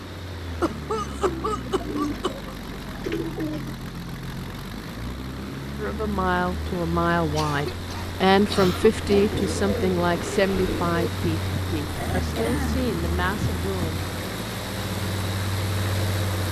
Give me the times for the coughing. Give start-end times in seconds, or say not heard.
0.6-2.5, 7.3-9.3, 11.2-14.0.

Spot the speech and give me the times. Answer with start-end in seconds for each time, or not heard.
5.8-14.0.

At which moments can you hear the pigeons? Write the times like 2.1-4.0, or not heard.
1.2-3.8, 9.1-11.1.